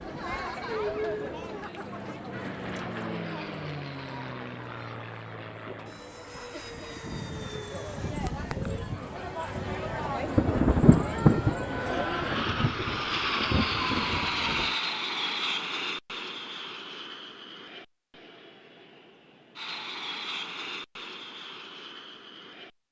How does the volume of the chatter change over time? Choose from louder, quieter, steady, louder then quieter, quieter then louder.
quieter then louder.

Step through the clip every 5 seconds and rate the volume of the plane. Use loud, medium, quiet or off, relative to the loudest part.
medium, medium, loud, medium, medium.